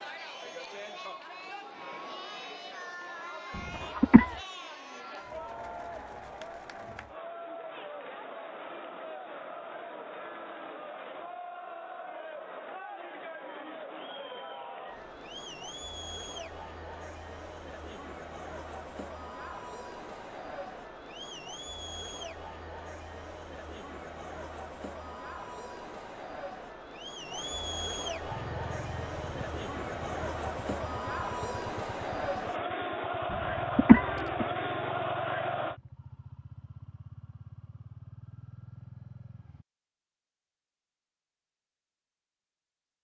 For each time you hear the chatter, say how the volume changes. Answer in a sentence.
You can hear the chatter from 0.0 to 35.8 s, getting louder.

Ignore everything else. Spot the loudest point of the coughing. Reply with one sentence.
The volume of the coughing peaks at 34 seconds.